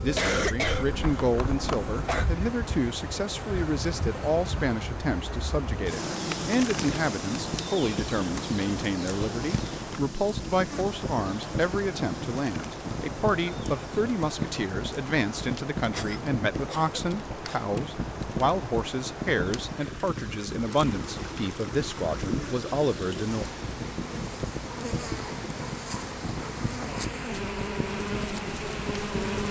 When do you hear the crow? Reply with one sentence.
The crow can't be heard in this clip.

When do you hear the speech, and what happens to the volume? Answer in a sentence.
You can hear the speech from 0.0 to 23.4 s, at a steady volume.